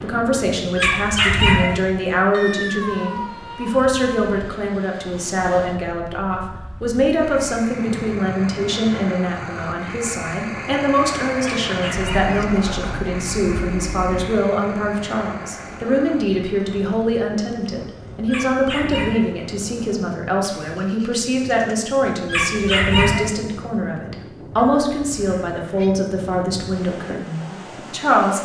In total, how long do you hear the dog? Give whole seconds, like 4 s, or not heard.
4 s.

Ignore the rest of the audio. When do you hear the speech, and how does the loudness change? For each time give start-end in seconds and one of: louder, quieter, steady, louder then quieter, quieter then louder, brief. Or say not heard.
0.0-28.4 steady.